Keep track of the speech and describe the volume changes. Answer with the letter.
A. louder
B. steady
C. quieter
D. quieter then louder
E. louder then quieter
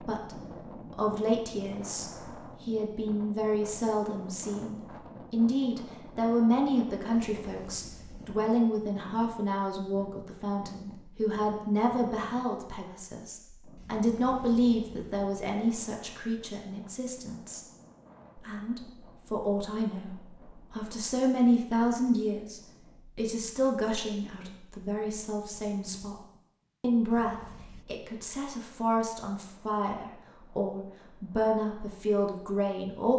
B.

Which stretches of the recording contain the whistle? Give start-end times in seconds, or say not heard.
not heard.